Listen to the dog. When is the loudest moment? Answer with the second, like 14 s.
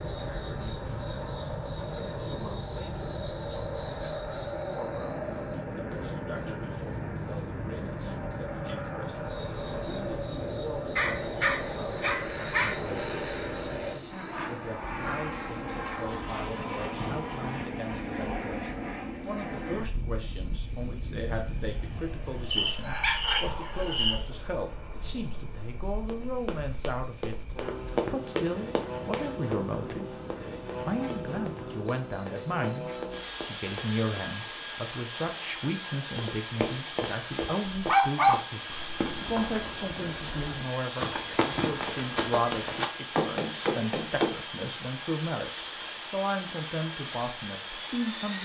38 s.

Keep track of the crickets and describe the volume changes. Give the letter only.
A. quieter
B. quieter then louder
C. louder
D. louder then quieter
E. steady
E.